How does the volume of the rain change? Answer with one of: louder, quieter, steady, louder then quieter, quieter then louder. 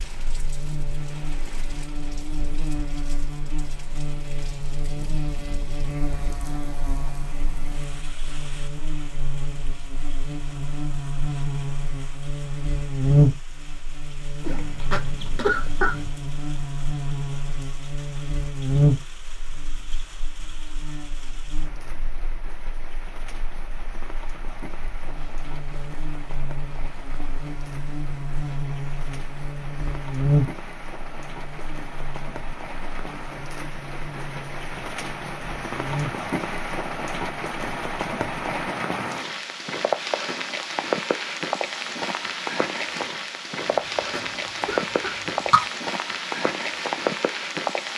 louder.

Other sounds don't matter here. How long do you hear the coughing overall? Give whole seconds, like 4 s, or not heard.
4 s.